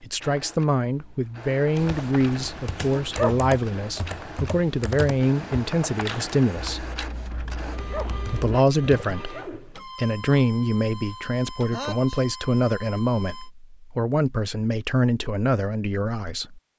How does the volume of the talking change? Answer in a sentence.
The loudness of the talking stays about the same.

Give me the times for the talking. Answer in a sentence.
The talking can be heard from 0.0 to 6.8 s and from 8.2 to 16.6 s.